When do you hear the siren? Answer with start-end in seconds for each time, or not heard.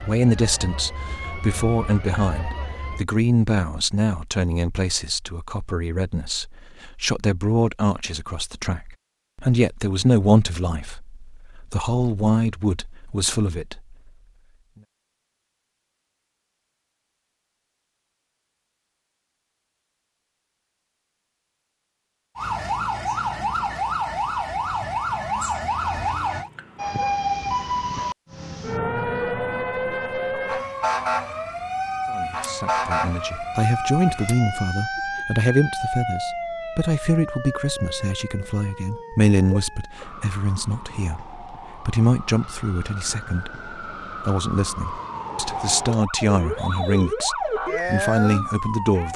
0.0-3.0, 22.4-49.1.